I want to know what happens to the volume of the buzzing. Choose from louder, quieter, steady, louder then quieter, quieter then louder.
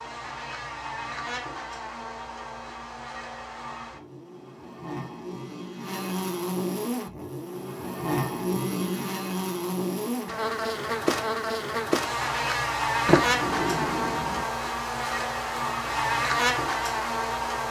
louder.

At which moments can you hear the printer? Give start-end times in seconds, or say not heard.
not heard.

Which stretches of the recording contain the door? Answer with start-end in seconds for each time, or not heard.
13.1-14.4.